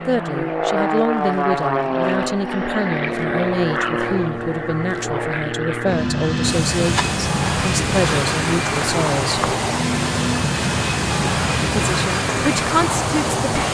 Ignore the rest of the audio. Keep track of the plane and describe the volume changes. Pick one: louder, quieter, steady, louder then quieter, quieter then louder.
steady.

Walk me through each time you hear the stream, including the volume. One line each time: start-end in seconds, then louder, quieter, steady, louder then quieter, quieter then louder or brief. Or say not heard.
6.4-13.6 steady.